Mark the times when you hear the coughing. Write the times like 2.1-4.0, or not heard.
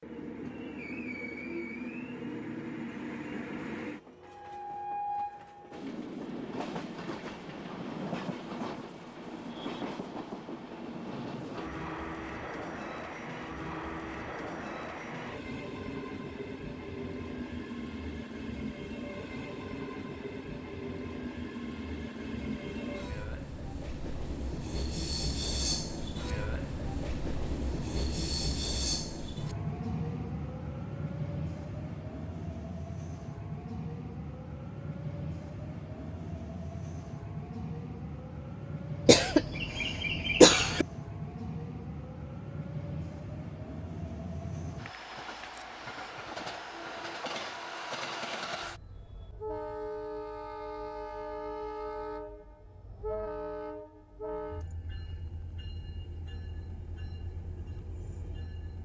39.0-40.9.